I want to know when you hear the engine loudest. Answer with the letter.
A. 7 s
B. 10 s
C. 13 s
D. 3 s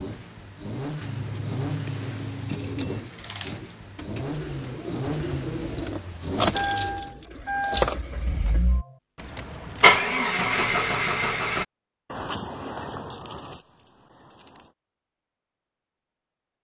B.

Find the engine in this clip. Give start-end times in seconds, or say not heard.
0.0-11.7.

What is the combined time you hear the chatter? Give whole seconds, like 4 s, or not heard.
not heard.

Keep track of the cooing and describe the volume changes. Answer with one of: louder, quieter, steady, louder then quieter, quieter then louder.
louder then quieter.